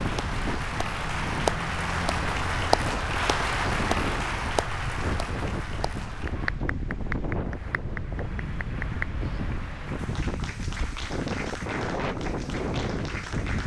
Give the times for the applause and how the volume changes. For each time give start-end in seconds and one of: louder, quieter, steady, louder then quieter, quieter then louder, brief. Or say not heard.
0.0-13.6 quieter.